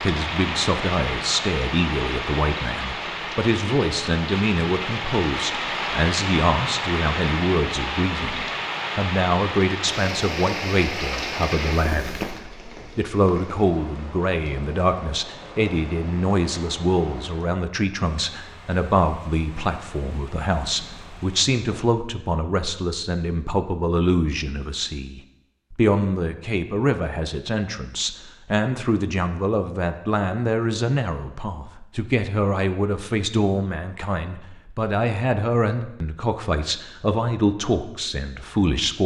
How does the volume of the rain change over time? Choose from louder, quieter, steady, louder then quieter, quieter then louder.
quieter.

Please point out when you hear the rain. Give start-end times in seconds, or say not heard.
0.0-21.9.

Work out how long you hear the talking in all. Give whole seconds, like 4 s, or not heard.
38 s.